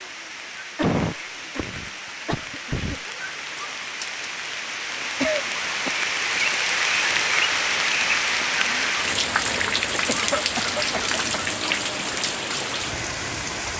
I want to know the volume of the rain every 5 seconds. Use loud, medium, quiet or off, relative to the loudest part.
medium, loud, loud.